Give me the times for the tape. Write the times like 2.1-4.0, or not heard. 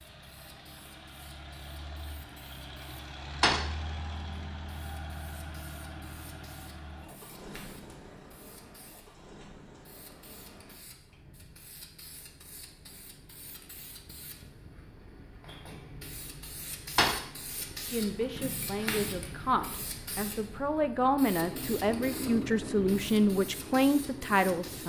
not heard.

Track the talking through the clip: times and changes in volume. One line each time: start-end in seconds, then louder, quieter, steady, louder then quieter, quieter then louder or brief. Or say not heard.
17.9-24.8 louder.